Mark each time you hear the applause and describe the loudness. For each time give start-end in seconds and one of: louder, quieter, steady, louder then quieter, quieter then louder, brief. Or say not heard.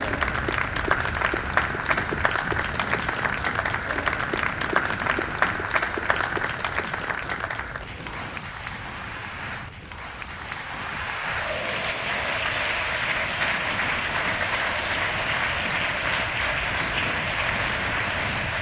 0.0-18.5 quieter then louder.